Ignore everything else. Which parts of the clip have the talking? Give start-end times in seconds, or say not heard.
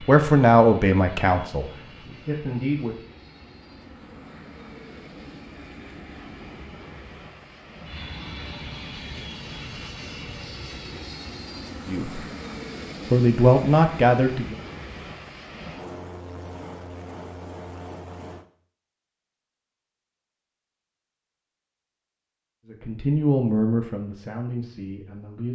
0.1-3.0, 11.8-12.2, 13.1-14.6, 22.6-25.5.